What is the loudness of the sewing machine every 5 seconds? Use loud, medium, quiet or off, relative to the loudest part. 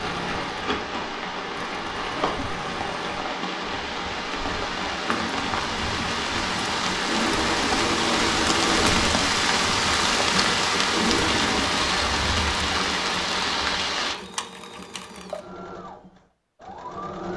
medium, loud, loud, medium.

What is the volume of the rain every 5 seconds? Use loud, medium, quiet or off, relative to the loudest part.
medium, loud, loud, off.